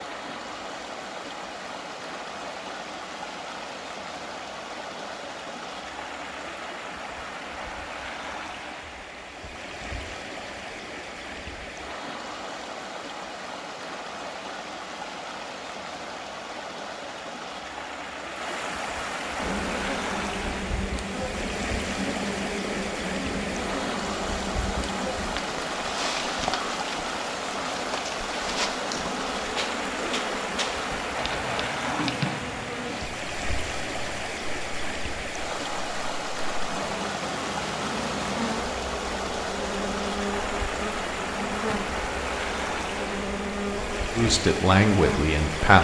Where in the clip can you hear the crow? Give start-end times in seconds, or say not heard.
not heard.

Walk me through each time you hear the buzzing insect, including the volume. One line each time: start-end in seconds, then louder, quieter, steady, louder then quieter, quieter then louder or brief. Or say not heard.
19.4-45.7 steady.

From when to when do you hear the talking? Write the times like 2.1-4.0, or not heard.
44.1-45.7.